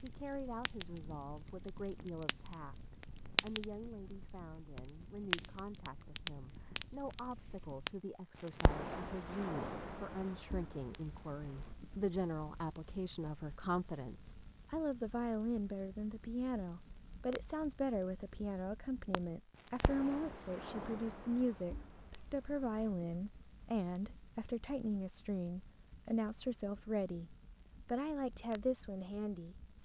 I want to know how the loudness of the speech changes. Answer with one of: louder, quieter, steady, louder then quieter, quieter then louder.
louder.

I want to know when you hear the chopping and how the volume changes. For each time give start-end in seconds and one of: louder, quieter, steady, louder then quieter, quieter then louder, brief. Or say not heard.
not heard.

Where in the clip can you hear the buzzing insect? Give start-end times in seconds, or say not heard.
not heard.